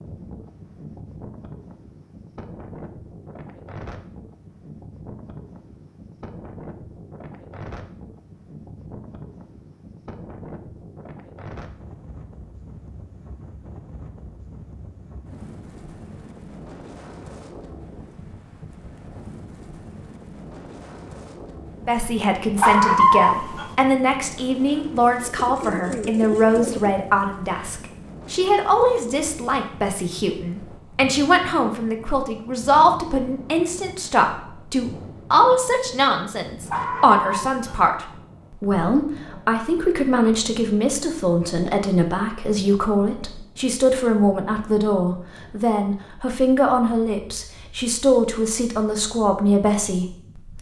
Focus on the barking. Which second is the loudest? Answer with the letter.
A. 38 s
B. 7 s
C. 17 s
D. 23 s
D.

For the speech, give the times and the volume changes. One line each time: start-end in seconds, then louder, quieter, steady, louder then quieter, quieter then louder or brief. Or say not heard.
21.9-50.5 steady.